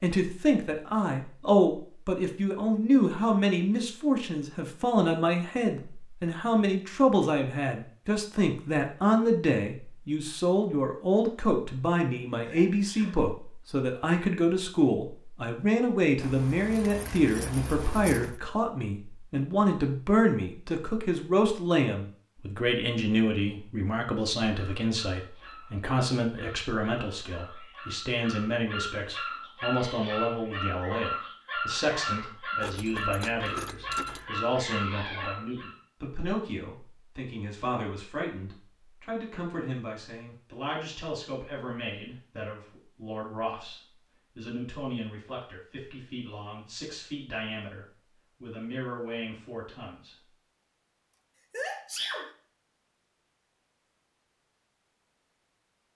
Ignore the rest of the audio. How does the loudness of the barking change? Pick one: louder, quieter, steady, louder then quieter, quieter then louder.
louder.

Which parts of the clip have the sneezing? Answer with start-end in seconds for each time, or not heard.
12.4-13.2, 51.5-52.3.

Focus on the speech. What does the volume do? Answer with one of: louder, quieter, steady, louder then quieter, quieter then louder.
quieter.